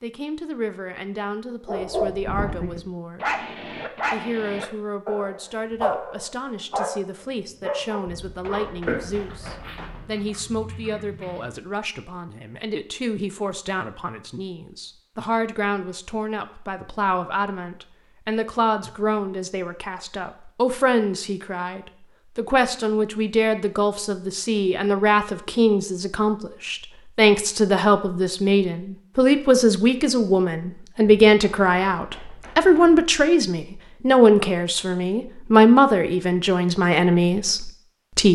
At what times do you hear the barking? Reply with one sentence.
You can hear the barking from 1.6 to 11.6 s.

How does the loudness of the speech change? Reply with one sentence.
The loudness of the speech goes up.